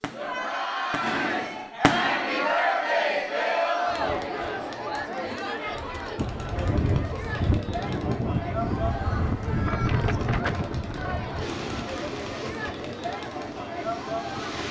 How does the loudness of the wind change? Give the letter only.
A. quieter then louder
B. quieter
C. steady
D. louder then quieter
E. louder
B.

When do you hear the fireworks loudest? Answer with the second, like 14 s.
2 s.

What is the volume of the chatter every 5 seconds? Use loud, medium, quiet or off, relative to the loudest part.
loud, medium, medium.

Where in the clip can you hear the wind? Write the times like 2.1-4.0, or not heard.
6.2-14.6.